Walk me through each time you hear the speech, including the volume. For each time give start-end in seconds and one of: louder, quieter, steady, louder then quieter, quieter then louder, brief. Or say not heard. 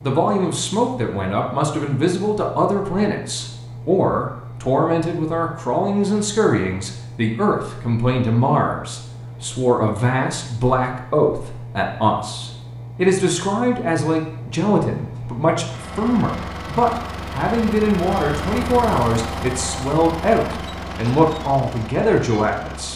0.0-22.9 steady.